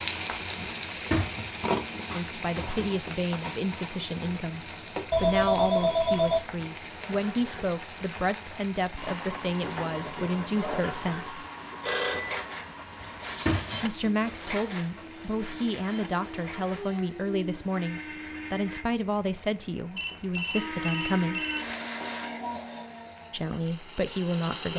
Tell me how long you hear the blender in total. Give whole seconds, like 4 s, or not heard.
14 s.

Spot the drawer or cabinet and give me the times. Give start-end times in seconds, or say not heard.
0.7-2.9, 13.0-14.1.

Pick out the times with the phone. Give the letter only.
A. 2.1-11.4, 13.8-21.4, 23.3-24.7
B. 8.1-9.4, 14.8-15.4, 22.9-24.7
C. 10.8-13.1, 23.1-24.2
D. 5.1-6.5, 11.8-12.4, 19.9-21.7
D.